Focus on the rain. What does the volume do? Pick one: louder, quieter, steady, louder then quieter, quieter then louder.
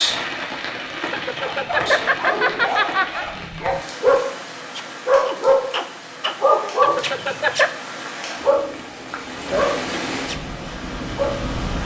quieter then louder.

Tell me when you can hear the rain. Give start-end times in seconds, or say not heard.
0.0-11.8.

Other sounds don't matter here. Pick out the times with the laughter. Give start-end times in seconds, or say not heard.
1.1-3.2, 6.8-7.7.